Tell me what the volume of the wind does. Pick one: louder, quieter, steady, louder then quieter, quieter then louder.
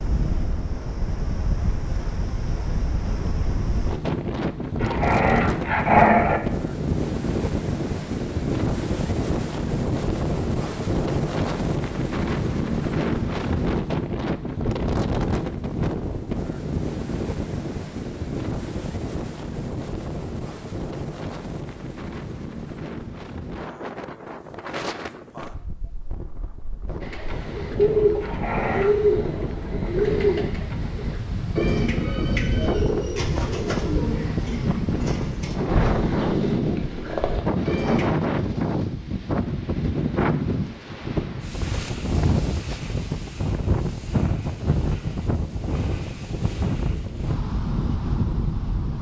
quieter then louder.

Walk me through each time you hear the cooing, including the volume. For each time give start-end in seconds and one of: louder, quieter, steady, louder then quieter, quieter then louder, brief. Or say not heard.
27.0-38.1 quieter.